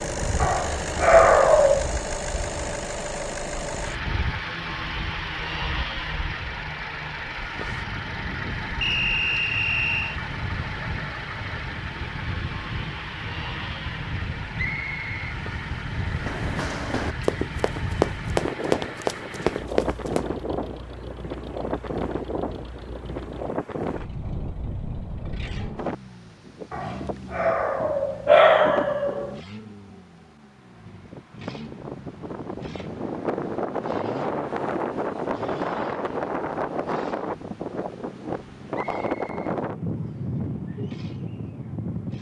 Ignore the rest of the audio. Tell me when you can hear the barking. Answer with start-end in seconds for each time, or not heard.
0.4-1.9, 26.7-29.4.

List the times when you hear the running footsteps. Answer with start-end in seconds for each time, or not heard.
16.1-20.3.